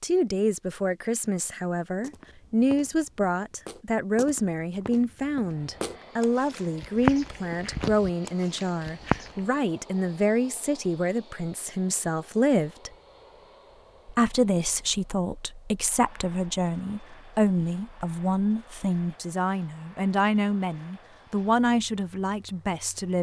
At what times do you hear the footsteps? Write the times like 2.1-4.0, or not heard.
2.0-9.6.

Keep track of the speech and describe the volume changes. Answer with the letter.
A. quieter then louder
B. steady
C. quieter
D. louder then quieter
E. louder
B.